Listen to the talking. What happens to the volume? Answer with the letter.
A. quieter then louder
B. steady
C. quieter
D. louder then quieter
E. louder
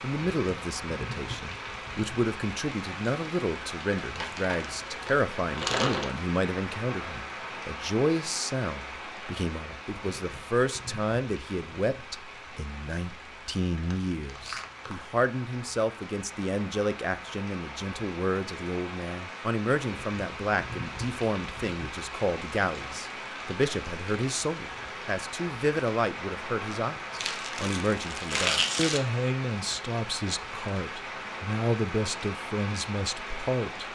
B.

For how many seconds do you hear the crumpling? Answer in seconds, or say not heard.
5 s.